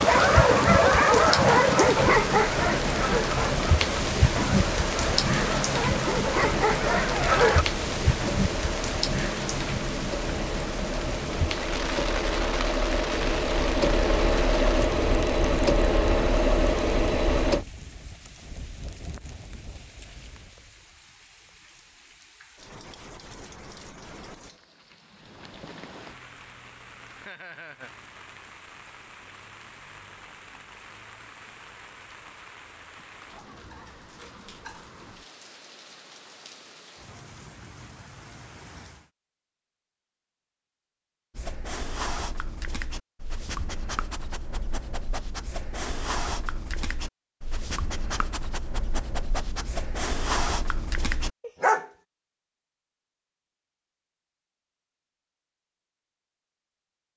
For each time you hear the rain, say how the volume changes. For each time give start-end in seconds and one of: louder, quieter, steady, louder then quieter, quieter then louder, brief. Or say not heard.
0.0-39.1 quieter.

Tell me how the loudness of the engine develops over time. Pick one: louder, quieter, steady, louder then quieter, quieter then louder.
louder.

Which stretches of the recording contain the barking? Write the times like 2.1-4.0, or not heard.
0.0-7.7, 41.4-51.9.